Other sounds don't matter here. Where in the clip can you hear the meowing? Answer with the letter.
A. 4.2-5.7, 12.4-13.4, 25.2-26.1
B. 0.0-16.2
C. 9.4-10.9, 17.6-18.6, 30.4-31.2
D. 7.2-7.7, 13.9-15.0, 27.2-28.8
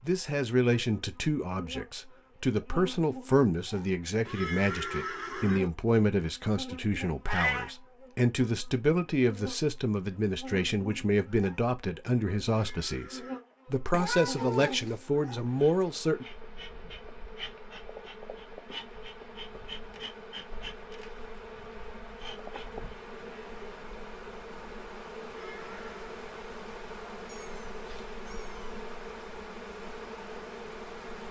D.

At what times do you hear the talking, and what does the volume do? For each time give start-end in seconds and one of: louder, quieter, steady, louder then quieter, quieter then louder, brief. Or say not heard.
0.0-16.2 steady.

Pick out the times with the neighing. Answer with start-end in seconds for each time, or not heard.
4.2-5.7, 12.4-13.4, 25.2-26.1.